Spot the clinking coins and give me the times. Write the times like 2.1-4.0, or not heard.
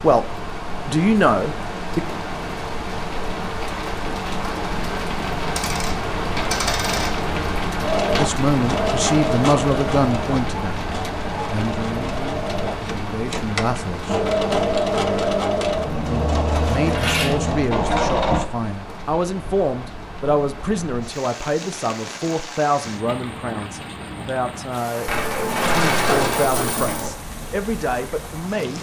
5.5-7.2, 16.5-17.4, 25.1-27.1.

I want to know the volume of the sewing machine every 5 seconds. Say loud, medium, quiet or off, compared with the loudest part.
off, loud, loud, loud, off, off.